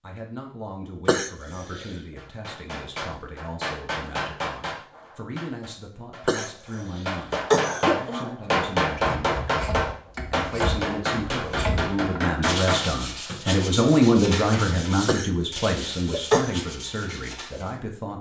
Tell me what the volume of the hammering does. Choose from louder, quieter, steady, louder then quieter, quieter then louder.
quieter then louder.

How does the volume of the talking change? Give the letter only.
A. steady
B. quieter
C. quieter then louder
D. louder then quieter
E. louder
D.